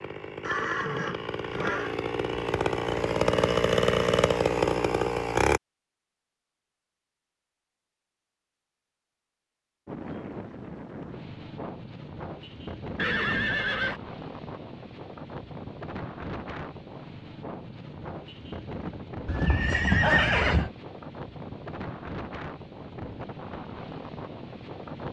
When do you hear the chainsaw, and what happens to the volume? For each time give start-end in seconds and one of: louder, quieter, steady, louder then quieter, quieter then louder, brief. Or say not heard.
0.0-5.6 louder.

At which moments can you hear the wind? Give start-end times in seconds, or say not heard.
9.8-25.0.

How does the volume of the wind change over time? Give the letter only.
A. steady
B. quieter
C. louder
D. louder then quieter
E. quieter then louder
A.